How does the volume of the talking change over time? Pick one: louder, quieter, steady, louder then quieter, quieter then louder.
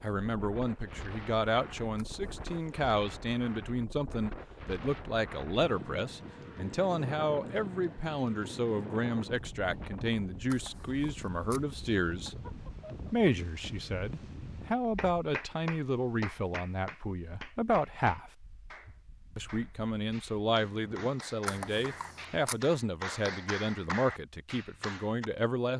steady.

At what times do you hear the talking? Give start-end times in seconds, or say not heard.
0.0-12.3, 13.1-18.3, 19.4-25.7.